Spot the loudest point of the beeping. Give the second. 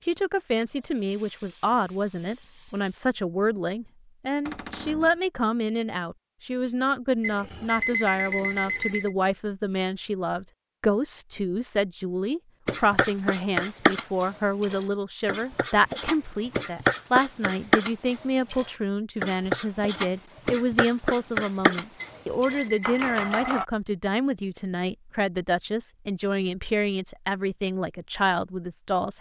8 s.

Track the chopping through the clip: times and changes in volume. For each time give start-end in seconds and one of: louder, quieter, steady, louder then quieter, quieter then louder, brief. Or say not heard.
12.7-23.6 steady.